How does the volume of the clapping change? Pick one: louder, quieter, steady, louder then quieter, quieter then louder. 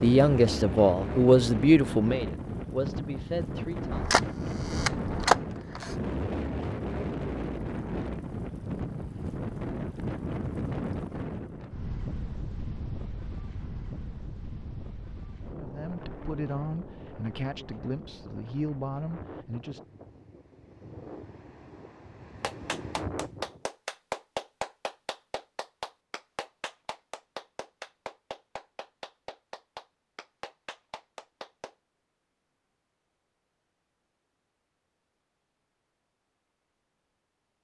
quieter.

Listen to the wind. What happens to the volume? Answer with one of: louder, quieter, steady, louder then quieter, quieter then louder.
quieter.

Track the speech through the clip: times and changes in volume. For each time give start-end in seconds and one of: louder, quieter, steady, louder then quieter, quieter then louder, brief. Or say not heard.
0.0-4.1 quieter
15.5-19.8 steady.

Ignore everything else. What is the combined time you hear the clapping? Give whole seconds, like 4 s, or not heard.
9 s.